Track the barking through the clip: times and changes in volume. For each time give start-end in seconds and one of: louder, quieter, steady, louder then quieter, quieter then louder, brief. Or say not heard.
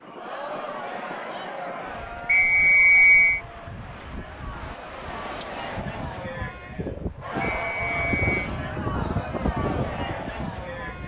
not heard.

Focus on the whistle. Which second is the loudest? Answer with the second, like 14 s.
3 s.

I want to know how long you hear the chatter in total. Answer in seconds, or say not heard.
11 s.